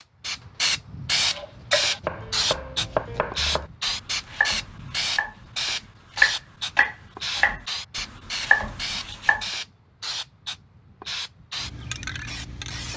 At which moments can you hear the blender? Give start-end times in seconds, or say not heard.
not heard.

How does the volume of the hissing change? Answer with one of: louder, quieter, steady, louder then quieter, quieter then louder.
quieter.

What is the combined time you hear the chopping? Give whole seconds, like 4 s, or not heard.
7 s.